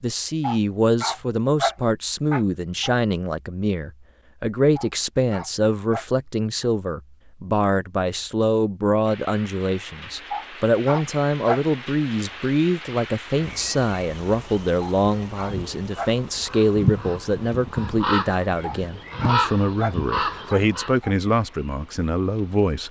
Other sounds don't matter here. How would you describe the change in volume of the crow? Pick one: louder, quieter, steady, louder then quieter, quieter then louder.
louder.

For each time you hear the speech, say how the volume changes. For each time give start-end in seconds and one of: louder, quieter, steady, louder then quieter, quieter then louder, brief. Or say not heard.
0.0-22.8 steady.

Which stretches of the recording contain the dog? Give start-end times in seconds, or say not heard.
0.4-3.0, 4.8-6.7, 10.3-11.6, 14.8-16.1, 18.6-21.1.